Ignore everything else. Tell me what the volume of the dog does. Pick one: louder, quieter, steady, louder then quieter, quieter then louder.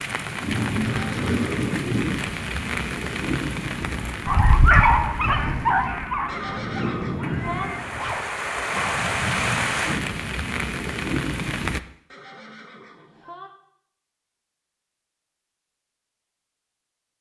quieter.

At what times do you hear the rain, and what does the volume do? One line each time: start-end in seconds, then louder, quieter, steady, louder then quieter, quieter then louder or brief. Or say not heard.
0.0-11.8 quieter then louder.